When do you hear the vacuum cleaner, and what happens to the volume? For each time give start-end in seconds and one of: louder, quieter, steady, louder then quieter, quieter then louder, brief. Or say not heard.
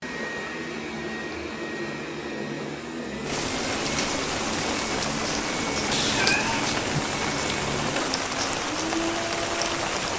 0.0-10.0 steady.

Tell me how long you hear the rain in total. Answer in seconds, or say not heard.
7 s.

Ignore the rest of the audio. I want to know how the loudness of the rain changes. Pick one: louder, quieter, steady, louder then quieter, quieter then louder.
steady.